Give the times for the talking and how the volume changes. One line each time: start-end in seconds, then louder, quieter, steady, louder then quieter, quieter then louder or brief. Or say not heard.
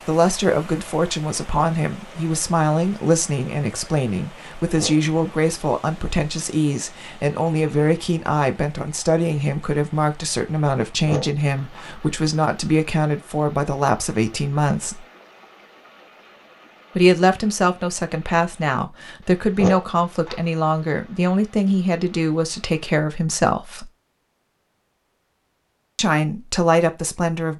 0.1-15.1 steady
16.9-23.9 steady
25.9-27.5 brief.